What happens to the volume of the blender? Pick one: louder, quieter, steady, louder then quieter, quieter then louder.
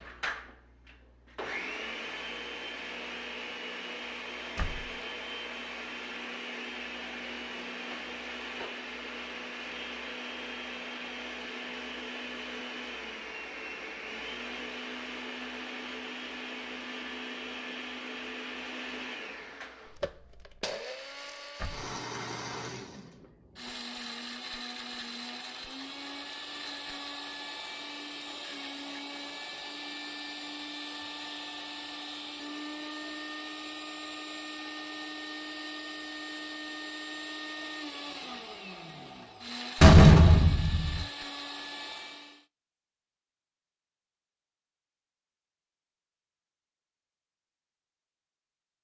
steady.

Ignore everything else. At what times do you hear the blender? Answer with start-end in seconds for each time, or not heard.
0.0-42.5.